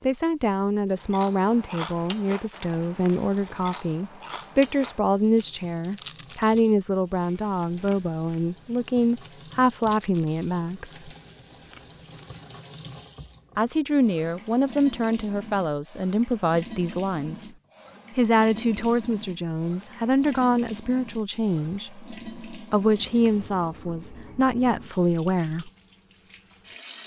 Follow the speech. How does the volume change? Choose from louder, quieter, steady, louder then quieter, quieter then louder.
steady.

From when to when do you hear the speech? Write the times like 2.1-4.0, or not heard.
0.0-11.1, 13.6-17.5, 18.1-25.7.